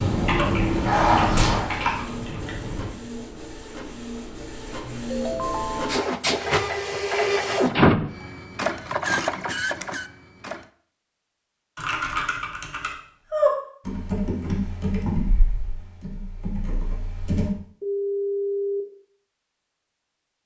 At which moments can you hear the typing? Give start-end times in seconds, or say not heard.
0.0-2.9, 11.8-17.5.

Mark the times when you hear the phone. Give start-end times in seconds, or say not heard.
5.1-6.0, 17.8-18.9.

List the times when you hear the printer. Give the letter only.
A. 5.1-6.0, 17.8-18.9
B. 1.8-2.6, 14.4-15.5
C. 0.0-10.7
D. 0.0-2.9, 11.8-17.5
C.